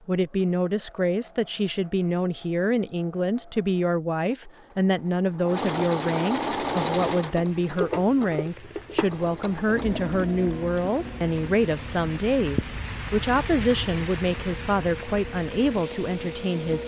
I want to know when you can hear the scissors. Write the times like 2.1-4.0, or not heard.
not heard.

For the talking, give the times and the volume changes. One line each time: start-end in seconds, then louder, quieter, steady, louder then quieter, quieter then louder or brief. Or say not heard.
0.1-16.8 steady.